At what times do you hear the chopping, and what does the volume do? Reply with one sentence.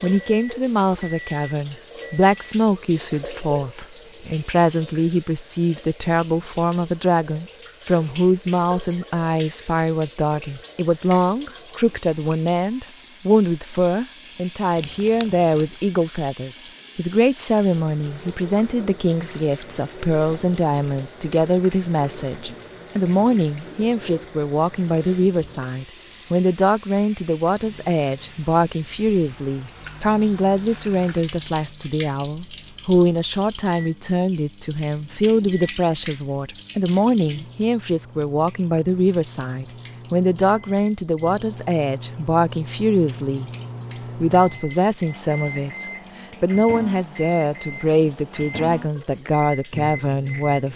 You can't hear the chopping here.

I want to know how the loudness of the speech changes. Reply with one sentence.
The loudness of the speech stays about the same.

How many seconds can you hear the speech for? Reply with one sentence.
You can hear the speech for 50 seconds altogether.